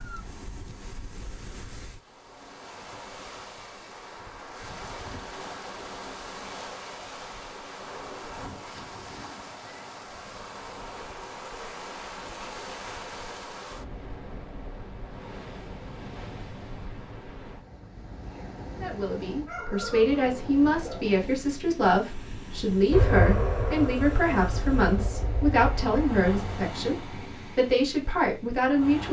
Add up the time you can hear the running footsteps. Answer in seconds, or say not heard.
not heard.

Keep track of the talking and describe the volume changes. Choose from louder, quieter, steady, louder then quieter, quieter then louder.
steady.